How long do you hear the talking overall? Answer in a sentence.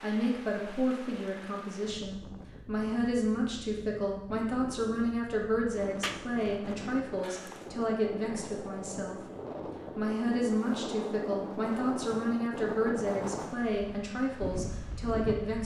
The talking can be heard for 15 seconds in total.